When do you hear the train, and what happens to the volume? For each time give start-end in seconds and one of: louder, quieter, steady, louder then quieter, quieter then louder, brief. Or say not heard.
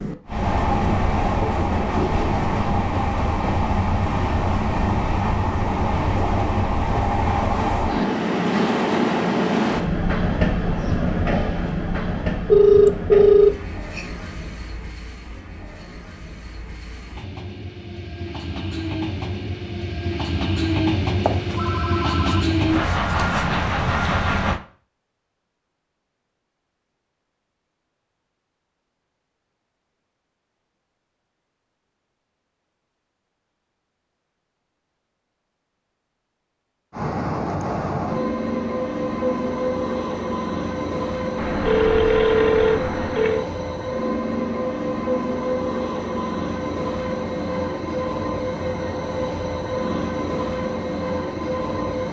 0.0-24.6 quieter then louder
36.9-52.0 steady.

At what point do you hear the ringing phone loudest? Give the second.
13 s.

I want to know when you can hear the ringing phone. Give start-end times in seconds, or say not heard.
12.4-14.1, 21.2-22.9, 41.4-43.5.